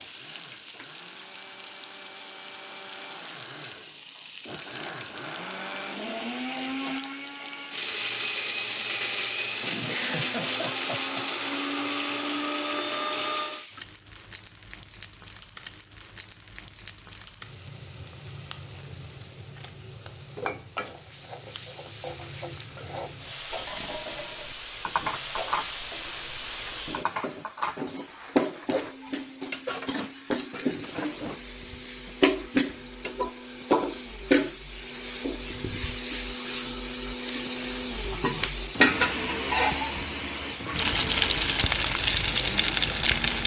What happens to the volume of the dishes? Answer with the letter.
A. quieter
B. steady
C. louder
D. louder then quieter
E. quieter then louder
B.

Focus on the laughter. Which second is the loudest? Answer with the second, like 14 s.
10 s.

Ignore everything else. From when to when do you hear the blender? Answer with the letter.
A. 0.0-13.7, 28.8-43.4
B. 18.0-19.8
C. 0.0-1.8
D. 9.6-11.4
A.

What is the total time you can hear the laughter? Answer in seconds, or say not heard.
2 s.